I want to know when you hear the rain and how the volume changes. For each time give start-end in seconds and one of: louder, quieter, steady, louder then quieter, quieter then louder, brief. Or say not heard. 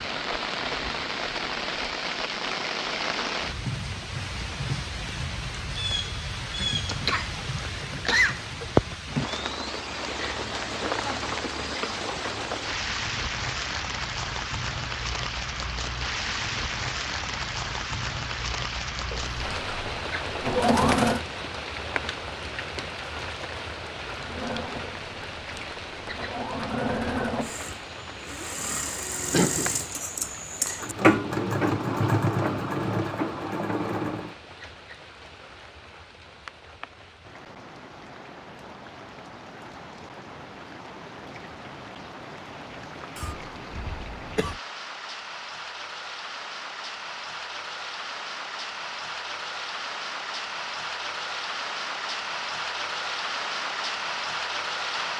0.0-55.1 quieter then louder.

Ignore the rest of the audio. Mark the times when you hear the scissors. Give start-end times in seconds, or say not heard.
not heard.